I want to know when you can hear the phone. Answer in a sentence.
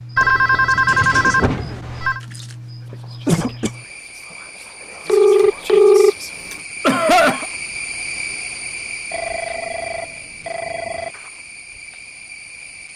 The phone can be heard from 0.1 to 2.2 s, from 5.0 to 6.5 s and from 9.1 to 11.2 s.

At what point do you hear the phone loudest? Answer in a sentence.
The volume of the phone peaks at 6 seconds.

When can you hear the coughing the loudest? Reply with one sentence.
The volume of the coughing peaks at 7 seconds.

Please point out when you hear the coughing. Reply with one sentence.
You can hear the coughing from 2.9 to 3.7 s and from 6.8 to 7.5 s.